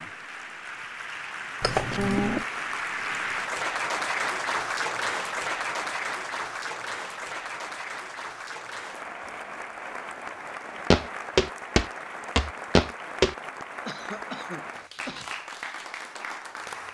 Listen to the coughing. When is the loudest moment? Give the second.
2 s.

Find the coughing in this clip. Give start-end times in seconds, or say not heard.
1.6-2.5, 13.8-15.2.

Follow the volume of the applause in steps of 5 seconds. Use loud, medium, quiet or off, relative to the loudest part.
loud, loud, medium, medium.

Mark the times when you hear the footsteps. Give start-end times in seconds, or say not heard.
10.9-13.3.